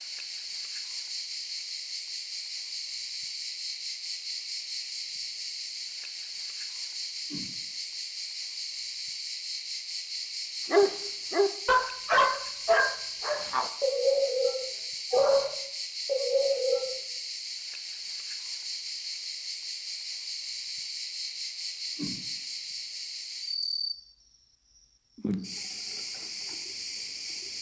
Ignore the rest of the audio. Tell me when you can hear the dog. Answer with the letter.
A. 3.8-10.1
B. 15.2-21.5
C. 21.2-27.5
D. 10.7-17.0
D.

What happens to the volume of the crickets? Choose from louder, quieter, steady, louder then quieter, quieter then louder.
steady.